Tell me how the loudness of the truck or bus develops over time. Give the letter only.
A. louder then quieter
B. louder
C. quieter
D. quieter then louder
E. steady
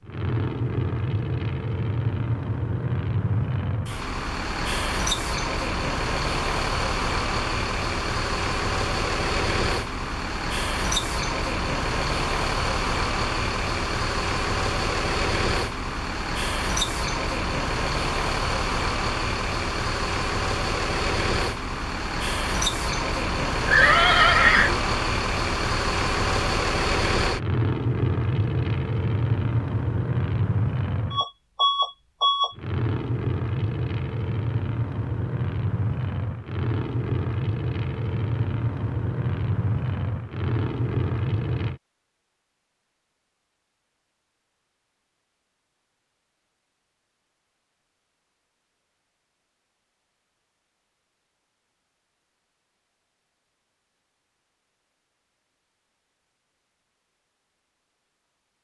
E.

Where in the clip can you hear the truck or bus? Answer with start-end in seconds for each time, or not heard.
0.0-41.8.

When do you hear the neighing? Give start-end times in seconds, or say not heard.
23.6-24.8.